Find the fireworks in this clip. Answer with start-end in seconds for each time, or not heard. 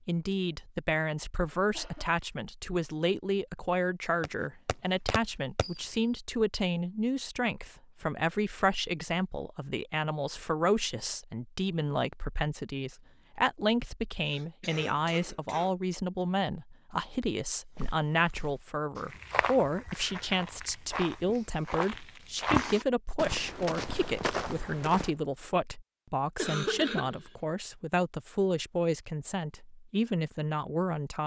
4.2-6.0.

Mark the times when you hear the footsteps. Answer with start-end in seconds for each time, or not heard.
17.8-25.1.